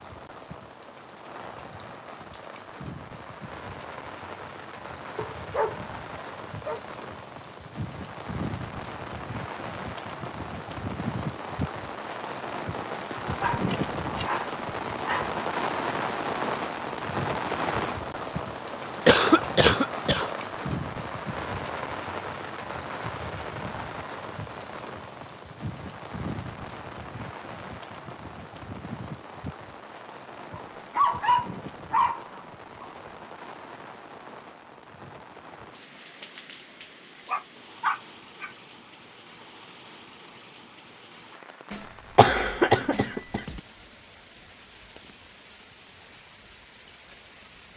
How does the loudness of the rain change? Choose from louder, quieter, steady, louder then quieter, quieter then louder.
louder then quieter.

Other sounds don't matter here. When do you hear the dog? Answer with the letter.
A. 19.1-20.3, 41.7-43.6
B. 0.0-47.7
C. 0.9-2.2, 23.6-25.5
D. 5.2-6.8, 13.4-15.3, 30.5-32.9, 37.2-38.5
D.